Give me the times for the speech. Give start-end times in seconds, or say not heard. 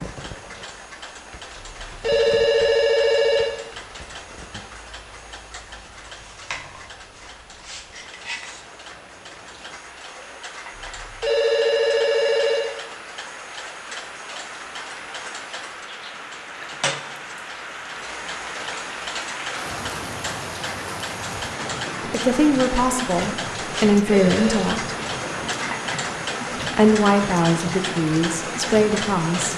22.1-24.9, 26.7-29.5.